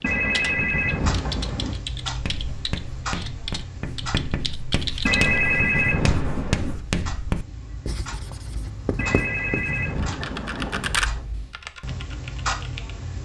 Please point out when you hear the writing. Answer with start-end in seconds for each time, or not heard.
2.0-11.2.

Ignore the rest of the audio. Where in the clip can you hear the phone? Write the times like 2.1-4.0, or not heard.
0.0-1.8, 5.0-6.8, 8.9-11.1.